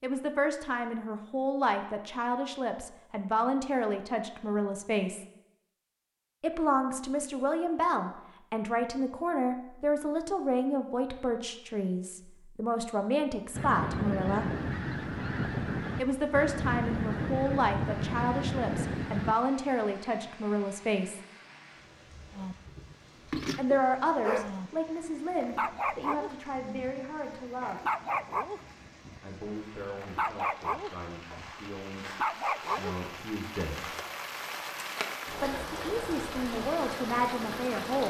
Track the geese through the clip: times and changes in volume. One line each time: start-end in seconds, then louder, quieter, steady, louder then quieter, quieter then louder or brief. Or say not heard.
13.5-19.4 steady.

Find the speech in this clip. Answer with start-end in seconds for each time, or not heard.
0.0-5.2, 6.4-14.5, 15.9-21.2, 23.6-27.8, 29.2-33.9, 35.4-38.0.